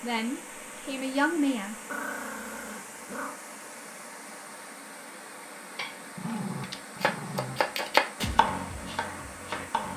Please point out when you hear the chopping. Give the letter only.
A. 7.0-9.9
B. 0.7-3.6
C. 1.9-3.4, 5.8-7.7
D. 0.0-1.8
A.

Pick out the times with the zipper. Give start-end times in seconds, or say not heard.
not heard.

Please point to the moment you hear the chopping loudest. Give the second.
8 s.